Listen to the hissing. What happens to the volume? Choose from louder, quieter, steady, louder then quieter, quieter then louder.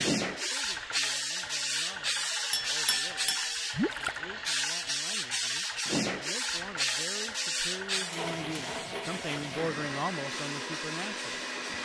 quieter.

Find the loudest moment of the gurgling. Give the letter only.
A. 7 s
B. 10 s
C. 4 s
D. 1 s
C.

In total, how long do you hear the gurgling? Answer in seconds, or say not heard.
2 s.